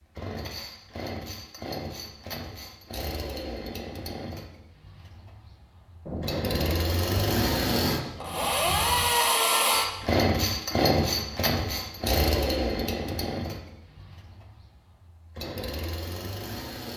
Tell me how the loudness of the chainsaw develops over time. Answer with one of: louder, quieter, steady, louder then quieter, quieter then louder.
louder then quieter.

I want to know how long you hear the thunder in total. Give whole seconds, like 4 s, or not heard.
3 s.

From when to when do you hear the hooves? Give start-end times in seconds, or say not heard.
not heard.